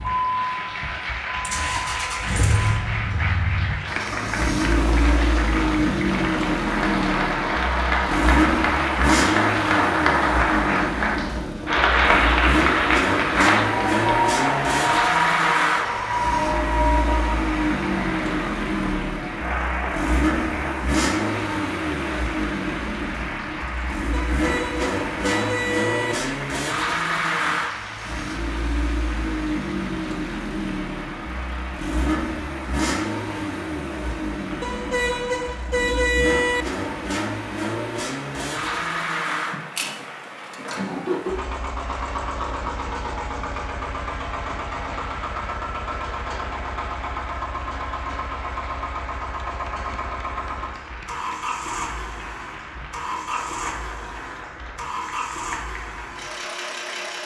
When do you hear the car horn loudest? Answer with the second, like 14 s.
36 s.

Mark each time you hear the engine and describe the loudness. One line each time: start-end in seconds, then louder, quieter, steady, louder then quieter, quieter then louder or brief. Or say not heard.
0.0-57.2 quieter.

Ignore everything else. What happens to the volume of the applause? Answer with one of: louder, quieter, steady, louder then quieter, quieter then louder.
quieter.